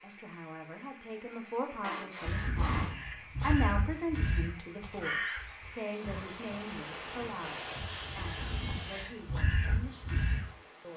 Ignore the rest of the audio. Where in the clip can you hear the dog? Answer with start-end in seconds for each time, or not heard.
not heard.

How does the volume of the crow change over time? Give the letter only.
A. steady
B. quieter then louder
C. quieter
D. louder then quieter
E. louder
B.